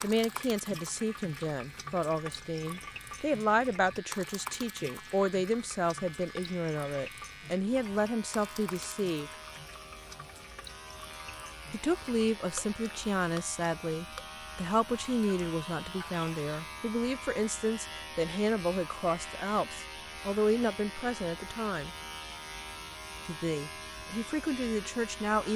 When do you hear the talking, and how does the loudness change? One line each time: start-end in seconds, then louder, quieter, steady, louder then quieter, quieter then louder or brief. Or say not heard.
0.0-9.3 steady
11.7-21.9 steady
23.2-25.5 brief.